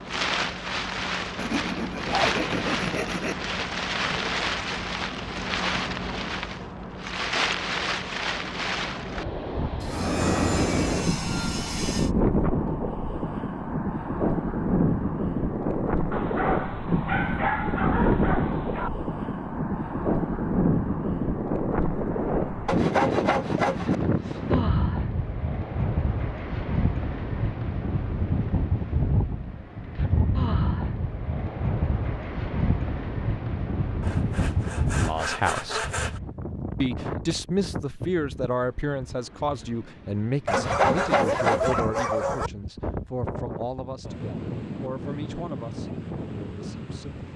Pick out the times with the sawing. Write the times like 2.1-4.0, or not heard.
1.4-3.4, 9.8-12.2, 22.6-23.9, 34.0-36.2, 40.5-41.8.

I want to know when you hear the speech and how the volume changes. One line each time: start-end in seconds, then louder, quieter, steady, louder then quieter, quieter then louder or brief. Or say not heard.
34.9-35.9 brief
36.8-47.3 quieter.